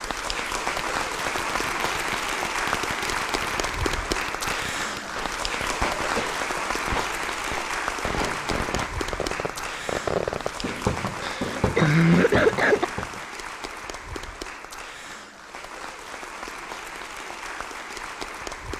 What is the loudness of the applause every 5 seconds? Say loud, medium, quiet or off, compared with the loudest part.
loud, loud, medium, medium.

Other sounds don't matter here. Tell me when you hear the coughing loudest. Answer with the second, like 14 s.
12 s.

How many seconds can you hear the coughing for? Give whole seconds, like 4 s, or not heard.
2 s.